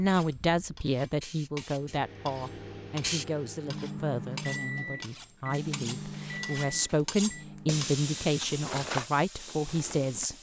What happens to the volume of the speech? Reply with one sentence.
The loudness of the speech goes down, then up.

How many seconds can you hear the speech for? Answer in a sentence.
The speech can be heard for 10 seconds in total.